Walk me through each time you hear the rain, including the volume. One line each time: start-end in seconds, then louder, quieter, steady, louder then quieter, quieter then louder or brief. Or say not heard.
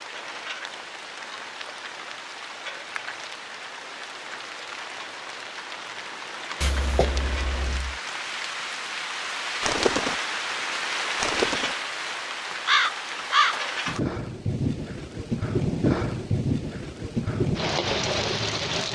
0.0-18.8 louder.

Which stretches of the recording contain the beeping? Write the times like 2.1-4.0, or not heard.
6.6-8.0.